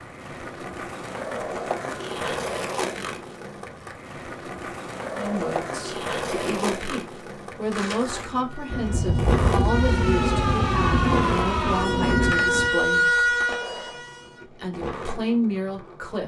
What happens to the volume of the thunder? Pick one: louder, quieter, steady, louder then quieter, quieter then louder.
steady.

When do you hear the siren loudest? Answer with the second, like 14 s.
13 s.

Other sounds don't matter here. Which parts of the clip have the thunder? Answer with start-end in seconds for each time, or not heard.
8.7-12.7.